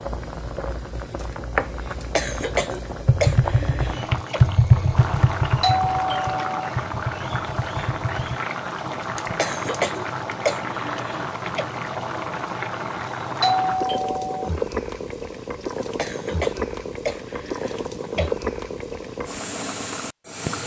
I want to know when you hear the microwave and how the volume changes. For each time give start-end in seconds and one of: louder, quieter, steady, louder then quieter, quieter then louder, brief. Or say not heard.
not heard.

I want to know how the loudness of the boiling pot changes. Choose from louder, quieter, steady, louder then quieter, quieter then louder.
steady.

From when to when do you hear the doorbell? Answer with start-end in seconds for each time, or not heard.
5.6-6.7, 13.4-14.5.